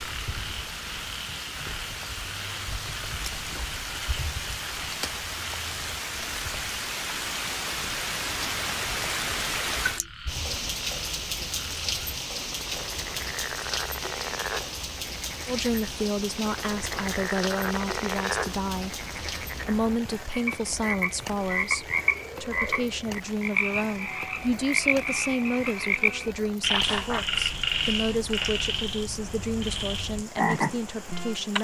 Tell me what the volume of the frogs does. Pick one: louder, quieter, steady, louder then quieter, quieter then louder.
louder.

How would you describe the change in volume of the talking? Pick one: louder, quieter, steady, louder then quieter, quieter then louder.
steady.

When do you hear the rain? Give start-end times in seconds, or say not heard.
0.0-31.5.